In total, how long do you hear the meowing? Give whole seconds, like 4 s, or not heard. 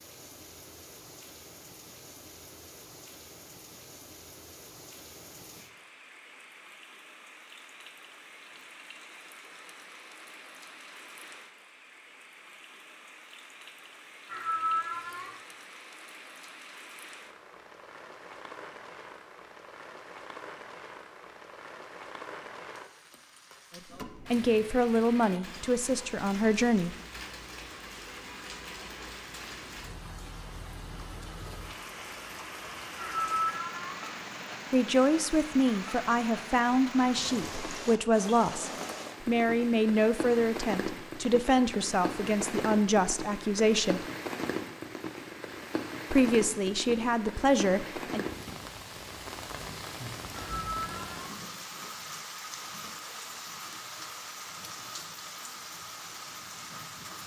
3 s.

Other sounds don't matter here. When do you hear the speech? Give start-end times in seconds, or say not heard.
23.8-26.9, 34.7-44.0, 46.1-48.2.